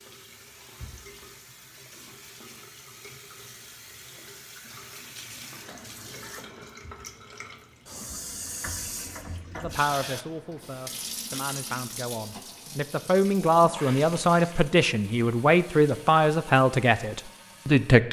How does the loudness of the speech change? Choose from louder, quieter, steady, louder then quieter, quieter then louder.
louder.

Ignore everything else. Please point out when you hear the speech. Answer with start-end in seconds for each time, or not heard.
9.6-18.0.